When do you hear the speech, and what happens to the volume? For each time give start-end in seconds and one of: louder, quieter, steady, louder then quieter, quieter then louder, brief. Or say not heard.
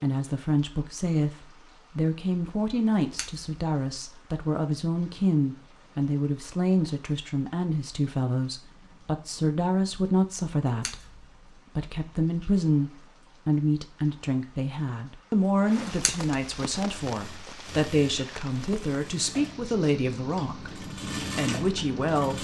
0.0-22.4 steady.